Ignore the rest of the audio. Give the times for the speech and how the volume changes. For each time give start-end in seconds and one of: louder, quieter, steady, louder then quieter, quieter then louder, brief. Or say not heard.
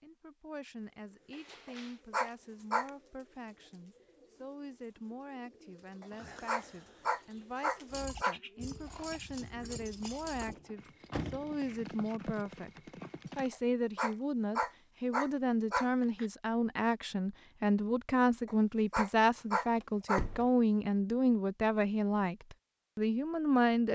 0.0-23.9 louder.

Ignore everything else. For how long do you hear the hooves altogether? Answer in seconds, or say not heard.
6 s.